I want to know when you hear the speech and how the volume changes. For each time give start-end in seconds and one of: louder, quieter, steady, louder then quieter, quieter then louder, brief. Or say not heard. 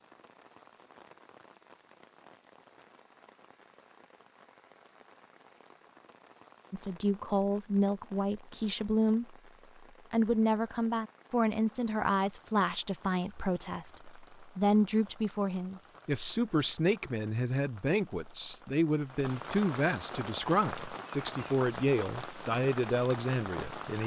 6.7-9.3 brief
10.1-24.0 steady.